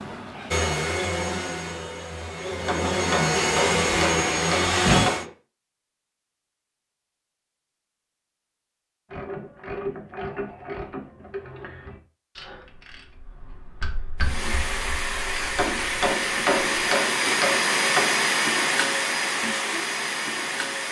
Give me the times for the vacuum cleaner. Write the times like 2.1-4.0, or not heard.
0.0-5.2, 14.2-20.8.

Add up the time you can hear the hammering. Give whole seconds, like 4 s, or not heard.
5 s.